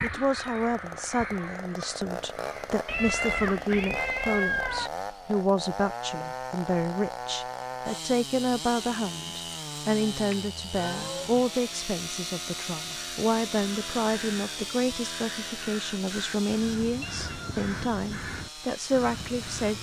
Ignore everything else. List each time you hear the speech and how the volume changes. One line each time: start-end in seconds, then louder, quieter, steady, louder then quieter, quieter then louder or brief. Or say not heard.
0.0-19.7 steady.